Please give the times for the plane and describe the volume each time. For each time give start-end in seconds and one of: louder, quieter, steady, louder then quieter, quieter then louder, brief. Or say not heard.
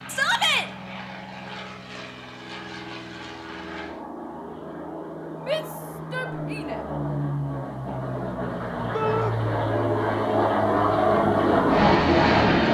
0.0-12.6 louder.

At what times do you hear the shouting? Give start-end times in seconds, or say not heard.
0.1-0.7, 5.5-6.8, 8.9-9.3.